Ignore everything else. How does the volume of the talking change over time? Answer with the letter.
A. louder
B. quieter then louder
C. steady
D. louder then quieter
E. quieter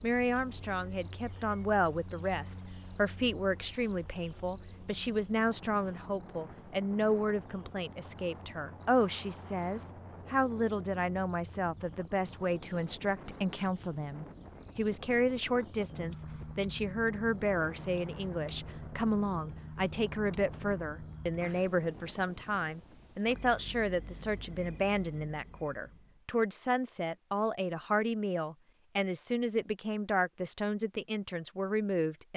C.